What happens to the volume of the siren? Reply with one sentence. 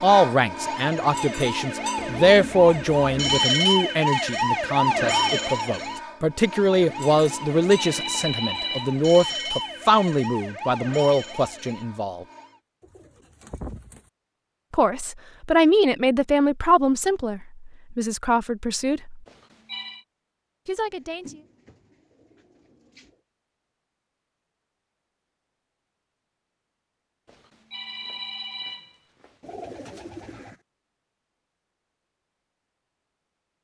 The loudness of the siren goes up, then down.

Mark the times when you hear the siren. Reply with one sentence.
The siren can be heard from 0.0 to 12.6 s.